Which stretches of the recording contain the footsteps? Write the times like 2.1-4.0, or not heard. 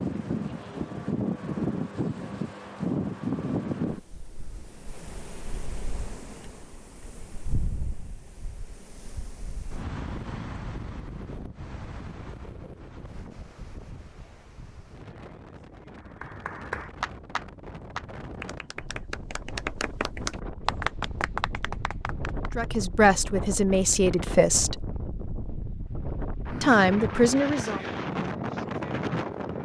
not heard.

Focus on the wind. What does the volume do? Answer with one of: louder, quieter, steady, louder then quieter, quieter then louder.
quieter then louder.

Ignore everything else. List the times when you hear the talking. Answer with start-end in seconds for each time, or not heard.
22.6-24.8, 26.6-27.8.